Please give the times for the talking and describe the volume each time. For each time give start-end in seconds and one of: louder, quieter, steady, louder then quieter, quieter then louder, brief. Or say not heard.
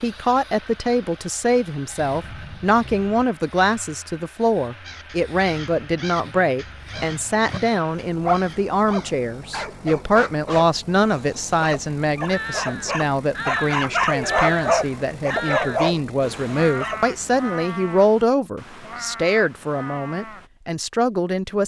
0.0-21.6 steady.